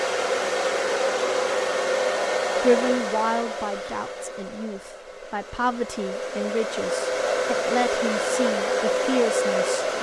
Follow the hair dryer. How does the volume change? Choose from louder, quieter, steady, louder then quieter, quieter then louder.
quieter then louder.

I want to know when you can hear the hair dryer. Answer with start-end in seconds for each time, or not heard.
0.0-9.9.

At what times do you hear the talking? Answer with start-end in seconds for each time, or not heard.
2.6-9.9.